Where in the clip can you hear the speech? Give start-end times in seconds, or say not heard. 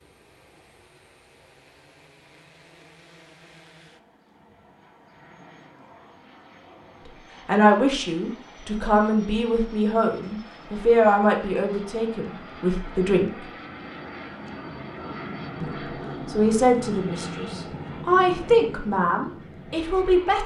7.5-13.4, 15.6-20.4.